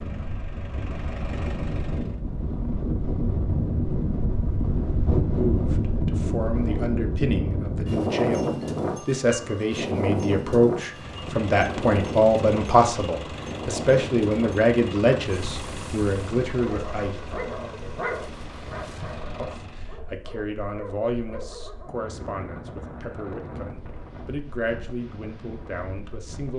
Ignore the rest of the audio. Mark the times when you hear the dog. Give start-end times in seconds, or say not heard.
16.5-22.1.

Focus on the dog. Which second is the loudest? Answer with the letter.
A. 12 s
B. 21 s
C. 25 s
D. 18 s
D.